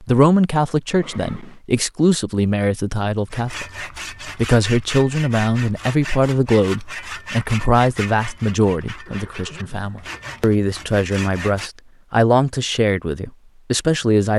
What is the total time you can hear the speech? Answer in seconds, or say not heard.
14 s.